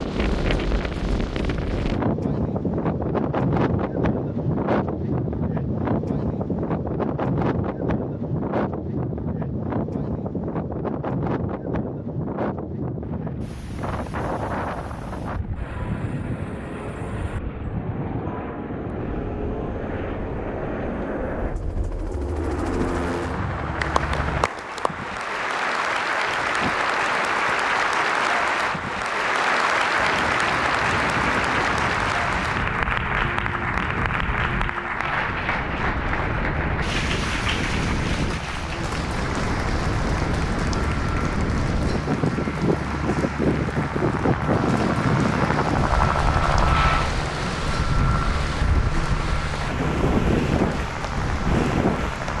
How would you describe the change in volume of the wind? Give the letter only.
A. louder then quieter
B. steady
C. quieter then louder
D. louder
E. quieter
C.